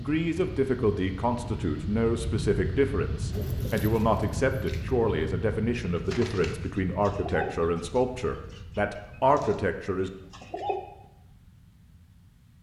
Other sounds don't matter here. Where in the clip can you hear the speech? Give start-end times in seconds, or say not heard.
0.0-10.1.